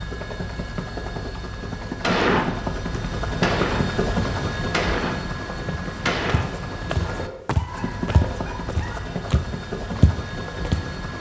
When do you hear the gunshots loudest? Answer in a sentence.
The loudest moment of the gunshots is at 2 seconds.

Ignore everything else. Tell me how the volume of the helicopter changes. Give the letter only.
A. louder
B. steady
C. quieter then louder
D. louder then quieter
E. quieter
D.